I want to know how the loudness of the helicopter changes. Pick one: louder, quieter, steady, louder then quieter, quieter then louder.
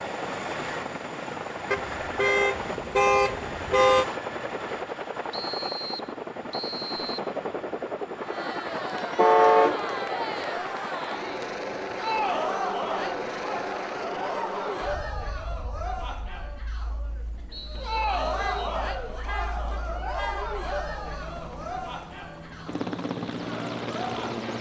quieter then louder.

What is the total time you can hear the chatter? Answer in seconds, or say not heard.
16 s.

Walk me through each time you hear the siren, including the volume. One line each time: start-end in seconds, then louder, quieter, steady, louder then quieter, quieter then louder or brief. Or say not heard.
not heard.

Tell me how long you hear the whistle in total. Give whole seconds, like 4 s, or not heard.
3 s.